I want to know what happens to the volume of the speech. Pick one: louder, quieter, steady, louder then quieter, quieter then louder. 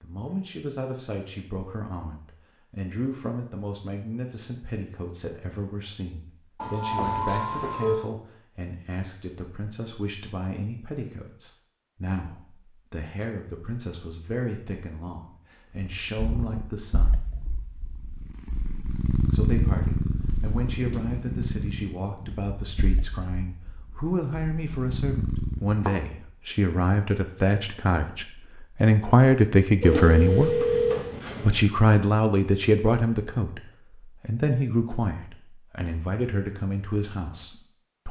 louder.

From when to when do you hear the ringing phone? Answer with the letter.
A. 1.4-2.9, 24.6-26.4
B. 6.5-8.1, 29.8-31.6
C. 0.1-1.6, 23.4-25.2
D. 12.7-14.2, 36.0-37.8
B.